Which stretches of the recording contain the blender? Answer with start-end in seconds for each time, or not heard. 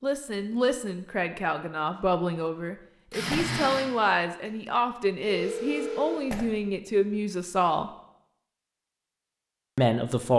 3.1-6.5.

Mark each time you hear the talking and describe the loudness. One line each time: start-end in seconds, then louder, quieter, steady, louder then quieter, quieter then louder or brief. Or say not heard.
0.0-7.9 steady
9.8-10.3 brief.